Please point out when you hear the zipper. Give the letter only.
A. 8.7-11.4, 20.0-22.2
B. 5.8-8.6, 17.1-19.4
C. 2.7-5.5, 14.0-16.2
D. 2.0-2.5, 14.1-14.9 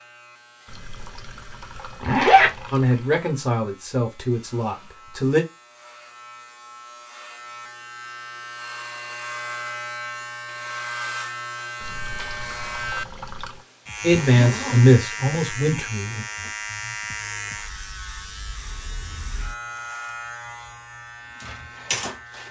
D.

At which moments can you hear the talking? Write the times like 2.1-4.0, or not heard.
2.7-5.5, 14.0-16.2.